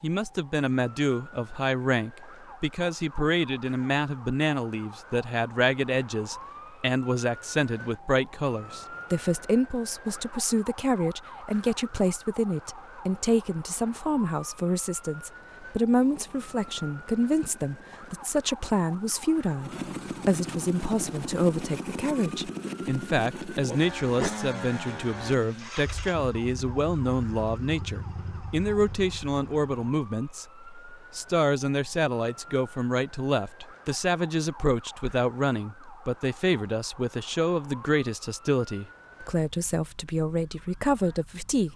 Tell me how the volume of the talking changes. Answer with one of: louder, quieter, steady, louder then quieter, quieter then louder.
steady.